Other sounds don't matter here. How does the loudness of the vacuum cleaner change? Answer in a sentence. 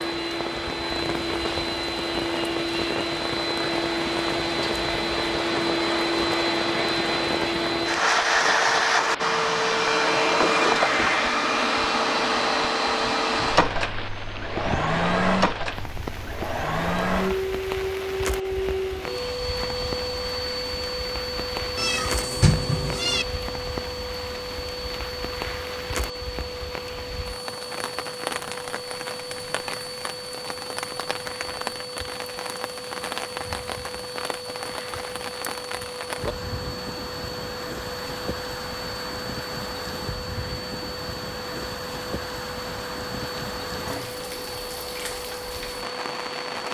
The volume of the vacuum cleaner goes down.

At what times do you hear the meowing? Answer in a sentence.
The meowing can be heard from 21.8 to 23.2 s.